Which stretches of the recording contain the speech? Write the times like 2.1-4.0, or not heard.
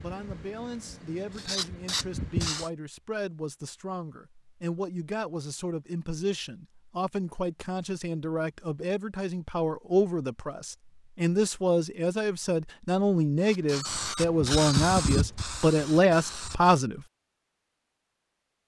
0.0-17.0.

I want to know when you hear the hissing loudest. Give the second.
15 s.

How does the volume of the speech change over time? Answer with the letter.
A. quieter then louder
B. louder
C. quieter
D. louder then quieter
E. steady
B.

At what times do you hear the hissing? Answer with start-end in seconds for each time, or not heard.
0.0-2.7, 13.4-16.8.